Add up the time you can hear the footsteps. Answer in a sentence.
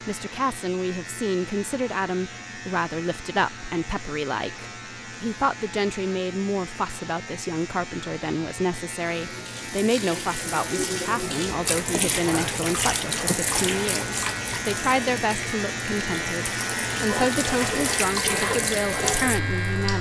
You can't hear the footsteps here.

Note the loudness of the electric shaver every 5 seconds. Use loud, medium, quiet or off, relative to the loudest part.
medium, medium, loud, loud.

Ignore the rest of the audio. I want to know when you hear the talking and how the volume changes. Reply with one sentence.
You can hear the talking from 0.1 to 19.9 s, at a steady volume.